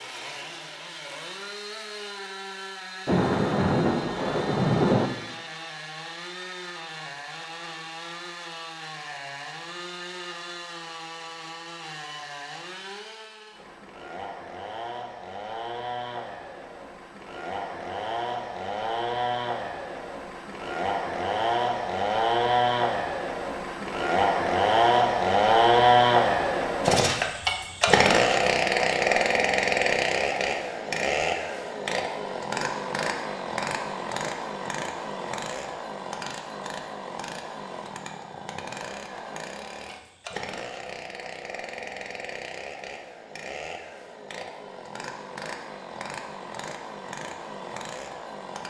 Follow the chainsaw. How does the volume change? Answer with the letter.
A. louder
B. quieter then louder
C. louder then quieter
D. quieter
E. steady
C.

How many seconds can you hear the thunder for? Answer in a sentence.
You can hear the thunder for 2 seconds altogether.